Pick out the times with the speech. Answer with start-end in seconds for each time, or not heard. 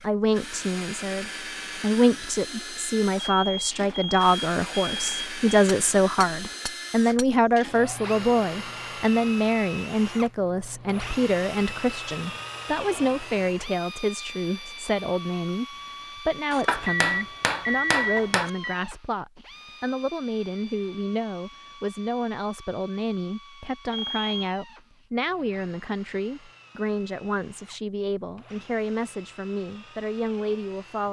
0.0-31.0.